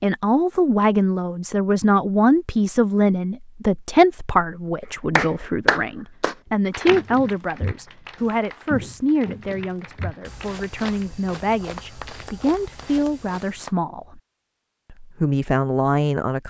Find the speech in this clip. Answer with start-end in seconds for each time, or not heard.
0.0-14.2, 14.9-16.4.